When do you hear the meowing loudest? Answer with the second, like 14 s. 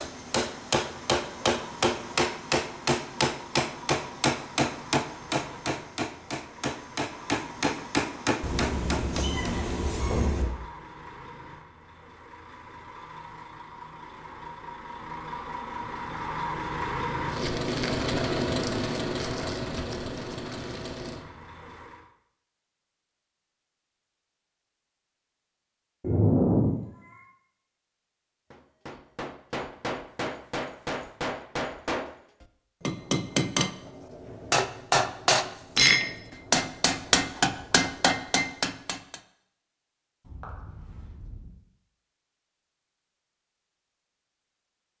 26 s.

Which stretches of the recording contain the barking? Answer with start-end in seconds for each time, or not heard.
not heard.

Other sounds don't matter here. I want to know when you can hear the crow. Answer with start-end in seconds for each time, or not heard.
not heard.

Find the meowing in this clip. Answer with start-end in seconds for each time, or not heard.
8.4-10.4, 26.0-26.7, 40.2-41.5.